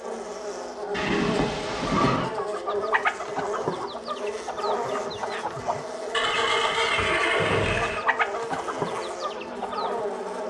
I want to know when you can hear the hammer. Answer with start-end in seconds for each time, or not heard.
not heard.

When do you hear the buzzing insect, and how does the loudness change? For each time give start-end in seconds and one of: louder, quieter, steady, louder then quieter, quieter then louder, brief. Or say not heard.
0.0-10.4 steady.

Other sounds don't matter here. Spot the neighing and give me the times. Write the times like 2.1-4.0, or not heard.
0.9-2.3, 6.1-8.1.